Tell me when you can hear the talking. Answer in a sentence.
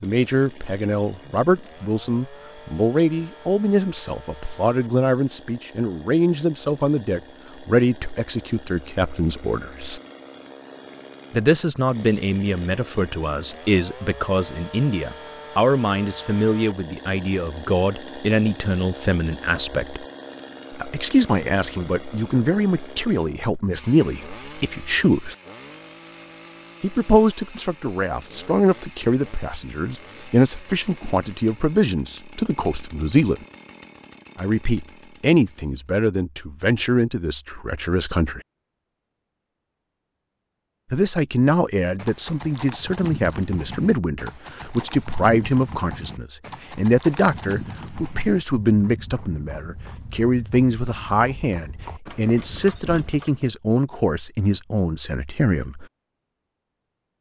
The talking can be heard from 0.0 to 10.0 s, from 11.3 to 20.1 s, from 20.7 to 25.4 s, from 26.8 to 33.5 s, from 34.4 to 38.4 s and from 40.9 to 55.9 s.